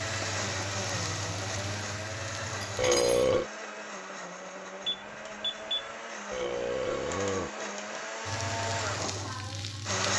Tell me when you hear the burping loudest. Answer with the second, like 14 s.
3 s.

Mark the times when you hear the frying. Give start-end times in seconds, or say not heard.
0.0-3.4, 8.2-10.1.